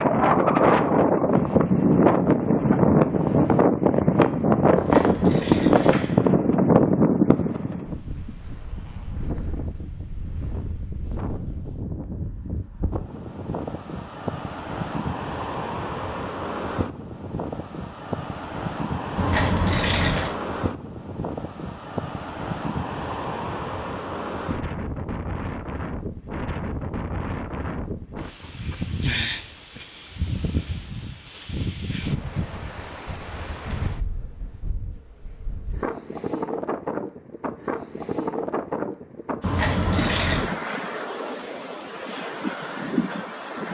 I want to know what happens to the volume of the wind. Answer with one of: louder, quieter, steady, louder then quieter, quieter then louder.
quieter.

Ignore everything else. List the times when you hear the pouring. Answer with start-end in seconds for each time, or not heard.
4.8-6.2, 19.1-20.4, 39.4-40.5.